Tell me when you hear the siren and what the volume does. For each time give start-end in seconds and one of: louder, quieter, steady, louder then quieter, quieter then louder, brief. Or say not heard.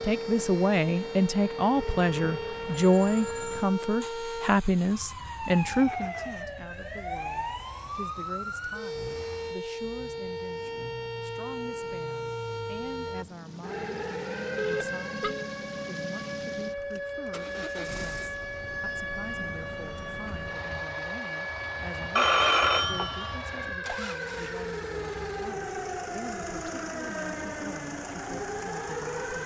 0.0-29.4 steady.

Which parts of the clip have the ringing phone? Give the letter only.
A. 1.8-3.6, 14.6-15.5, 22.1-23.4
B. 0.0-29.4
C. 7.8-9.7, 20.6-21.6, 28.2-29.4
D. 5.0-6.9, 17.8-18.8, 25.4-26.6
A.